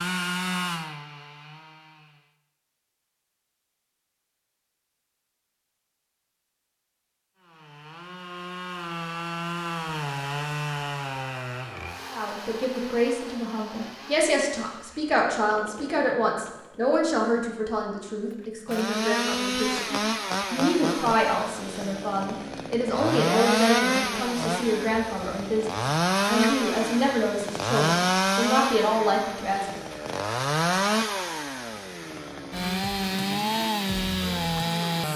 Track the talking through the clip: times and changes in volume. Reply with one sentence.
You can hear the talking from 12.1 to 29.8 s, at a steady volume.